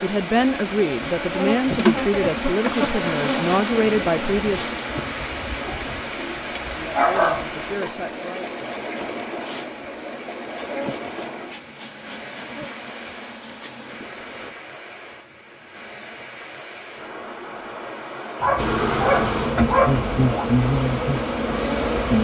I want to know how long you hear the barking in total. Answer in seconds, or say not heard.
4 s.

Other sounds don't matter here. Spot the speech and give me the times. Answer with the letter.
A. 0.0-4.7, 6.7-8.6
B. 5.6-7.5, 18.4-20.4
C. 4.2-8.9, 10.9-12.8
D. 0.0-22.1
A.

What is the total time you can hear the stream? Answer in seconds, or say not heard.
22 s.